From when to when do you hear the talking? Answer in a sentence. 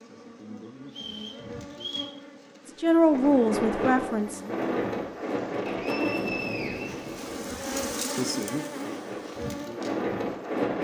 The talking can be heard from 2.8 to 4.4 s.